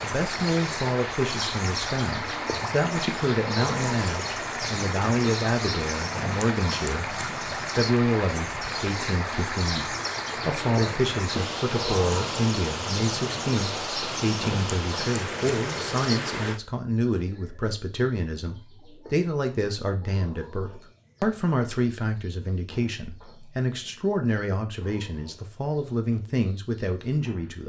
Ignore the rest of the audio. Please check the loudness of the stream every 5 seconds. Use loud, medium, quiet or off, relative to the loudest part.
loud, loud, loud, loud, off, off.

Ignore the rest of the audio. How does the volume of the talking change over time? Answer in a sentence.
The loudness of the talking stays about the same.